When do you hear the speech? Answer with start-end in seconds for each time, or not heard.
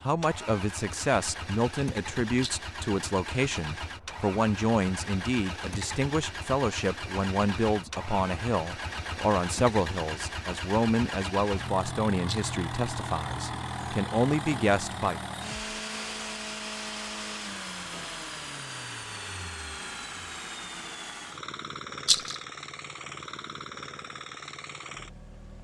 0.0-15.2.